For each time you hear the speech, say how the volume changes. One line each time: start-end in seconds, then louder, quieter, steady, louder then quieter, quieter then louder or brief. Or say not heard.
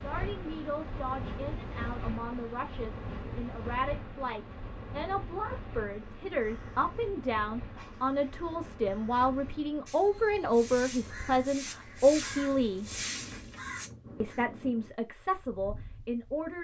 0.0-12.8 louder
14.2-16.5 brief.